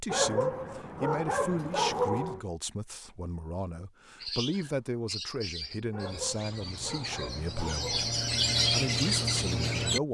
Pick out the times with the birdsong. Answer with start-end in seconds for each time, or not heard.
4.2-10.0.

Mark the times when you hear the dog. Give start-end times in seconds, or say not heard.
0.1-2.4, 5.9-8.1.